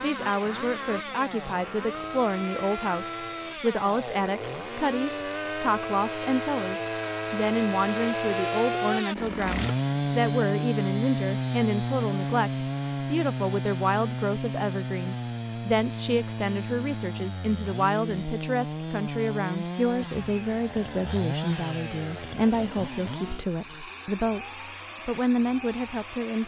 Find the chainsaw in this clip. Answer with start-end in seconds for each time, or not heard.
0.0-26.4.